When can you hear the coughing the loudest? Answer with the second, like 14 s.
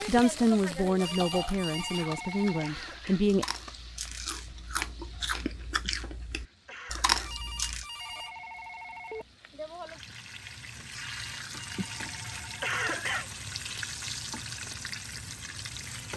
13 s.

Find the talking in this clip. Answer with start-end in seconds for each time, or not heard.
0.1-3.5.